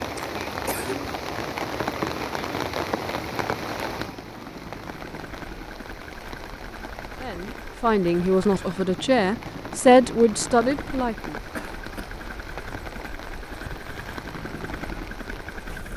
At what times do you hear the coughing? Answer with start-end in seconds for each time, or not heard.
0.1-1.1, 11.6-12.2.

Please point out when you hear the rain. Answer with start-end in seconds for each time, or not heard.
0.0-15.9.